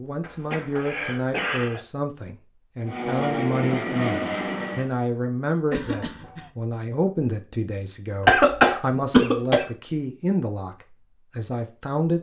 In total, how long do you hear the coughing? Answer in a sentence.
You can hear the coughing for 4 seconds altogether.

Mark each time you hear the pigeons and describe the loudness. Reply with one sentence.
You can't hear the pigeons here.